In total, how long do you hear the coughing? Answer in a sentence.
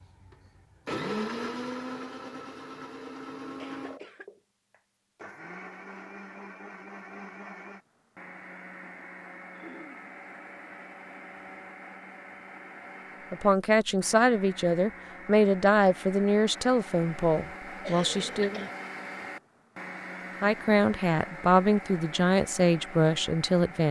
You can hear the coughing for 2 seconds altogether.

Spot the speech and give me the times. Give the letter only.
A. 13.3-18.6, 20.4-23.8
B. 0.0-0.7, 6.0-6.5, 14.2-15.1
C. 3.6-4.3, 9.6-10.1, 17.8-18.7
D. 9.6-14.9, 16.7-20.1
A.